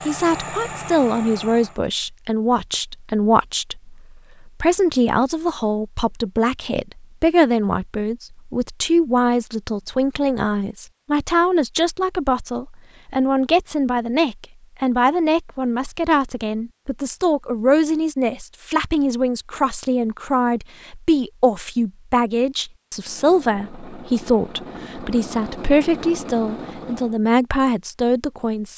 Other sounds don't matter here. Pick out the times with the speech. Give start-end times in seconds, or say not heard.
0.1-28.7.